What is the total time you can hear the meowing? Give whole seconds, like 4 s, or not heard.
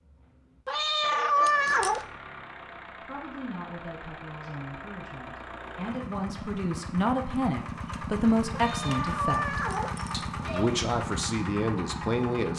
4 s.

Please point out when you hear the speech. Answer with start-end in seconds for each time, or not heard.
3.0-12.5.